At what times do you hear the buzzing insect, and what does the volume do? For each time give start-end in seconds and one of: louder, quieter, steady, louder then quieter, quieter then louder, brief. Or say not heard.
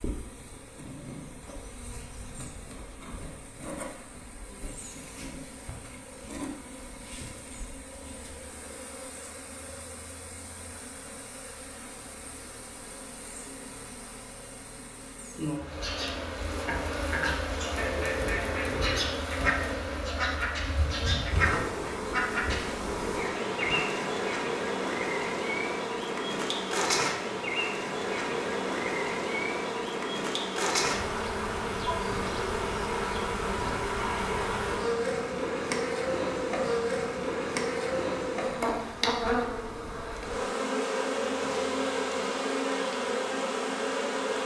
0.0-44.4 louder.